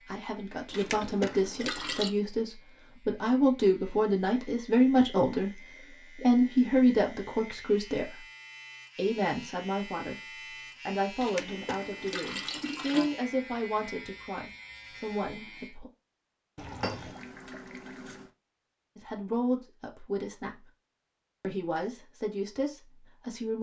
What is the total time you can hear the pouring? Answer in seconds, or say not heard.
5 s.